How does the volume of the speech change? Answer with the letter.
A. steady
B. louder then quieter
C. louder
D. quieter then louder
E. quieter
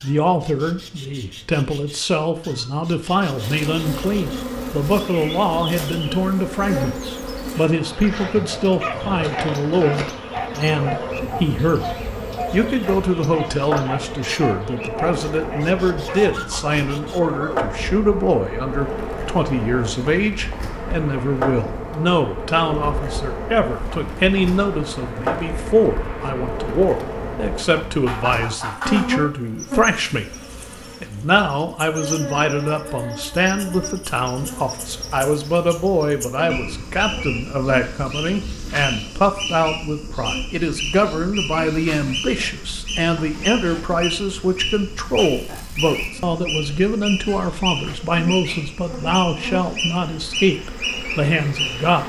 A.